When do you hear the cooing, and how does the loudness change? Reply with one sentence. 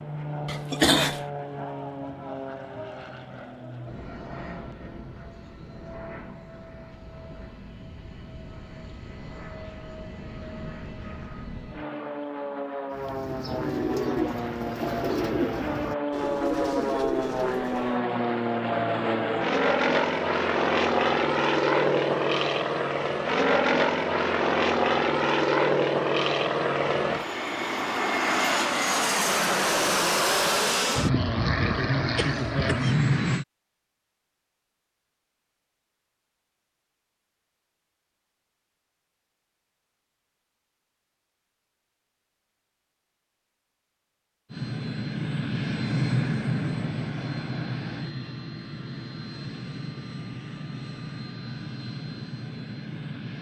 The cooing can be heard from 12.9 to 18.0 s, at a steady volume.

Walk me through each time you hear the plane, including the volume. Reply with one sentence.
You can hear the plane from 0.0 to 33.5 s, getting louder; and from 44.5 to 53.3 s, getting quieter.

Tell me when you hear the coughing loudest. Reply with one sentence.
The loudest moment of the coughing is at 1 second.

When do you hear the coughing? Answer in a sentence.
You can hear the coughing from 0.5 to 1.2 s and from 32.1 to 33.0 s.